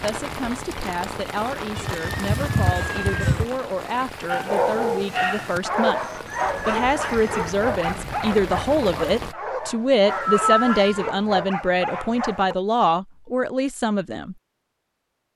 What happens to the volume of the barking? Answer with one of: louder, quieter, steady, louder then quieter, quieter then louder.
quieter.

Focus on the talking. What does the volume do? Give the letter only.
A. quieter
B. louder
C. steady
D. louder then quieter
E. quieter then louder
B.